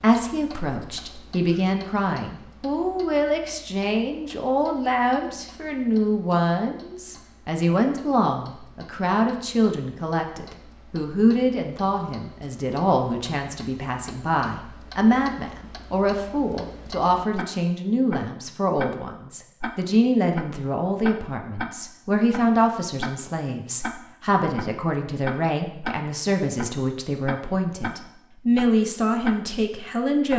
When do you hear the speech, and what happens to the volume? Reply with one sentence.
You can hear the speech from 0.0 to 30.3 s, at a steady volume.